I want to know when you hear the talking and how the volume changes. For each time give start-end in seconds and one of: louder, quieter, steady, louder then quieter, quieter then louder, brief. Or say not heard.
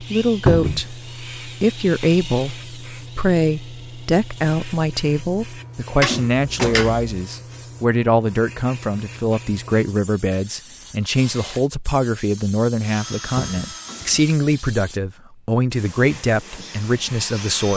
0.0-17.7 steady.